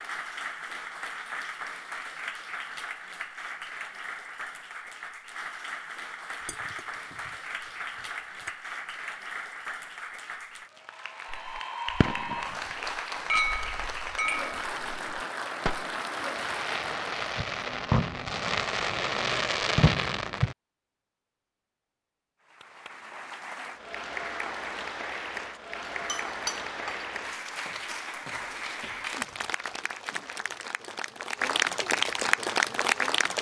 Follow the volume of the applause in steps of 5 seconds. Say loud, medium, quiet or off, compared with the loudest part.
medium, medium, medium, medium, medium, medium, loud.